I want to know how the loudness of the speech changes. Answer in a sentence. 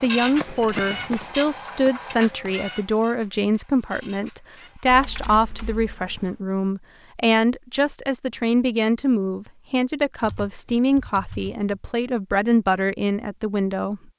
The volume of the speech stays about the same.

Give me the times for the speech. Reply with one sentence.
The speech can be heard from 0.0 to 14.0 s.